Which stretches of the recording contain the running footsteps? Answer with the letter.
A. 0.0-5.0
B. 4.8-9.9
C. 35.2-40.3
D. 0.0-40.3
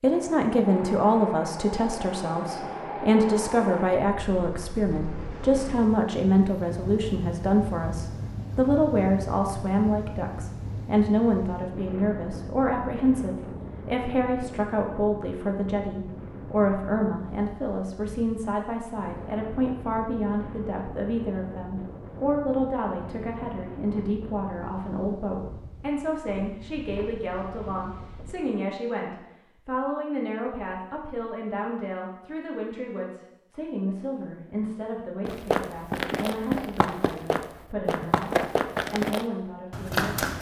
C.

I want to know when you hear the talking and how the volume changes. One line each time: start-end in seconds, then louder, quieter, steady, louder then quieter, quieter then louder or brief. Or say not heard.
0.0-40.3 quieter.